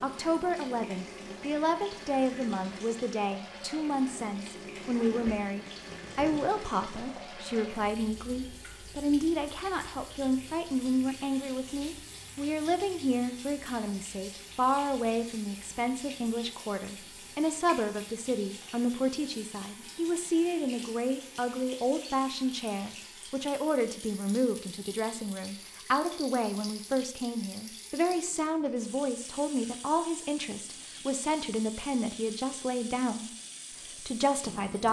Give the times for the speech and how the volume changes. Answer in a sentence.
You can hear the speech from 0.0 to 33.3 s, at a steady volume; and briefly from 34.0 to 34.8 s.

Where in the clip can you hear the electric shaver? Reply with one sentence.
The electric shaver can't be heard in this clip.